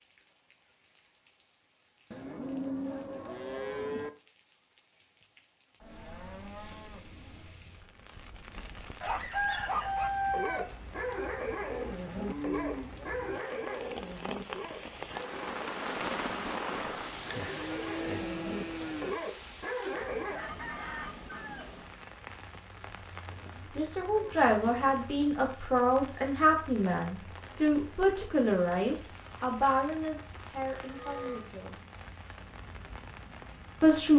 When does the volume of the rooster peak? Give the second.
10 s.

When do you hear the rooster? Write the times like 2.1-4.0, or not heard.
9.0-10.7, 19.9-21.7.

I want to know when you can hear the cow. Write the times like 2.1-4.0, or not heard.
2.1-4.1, 5.8-7.5, 12.2-14.0, 17.1-19.1, 23.2-25.1, 30.7-31.4.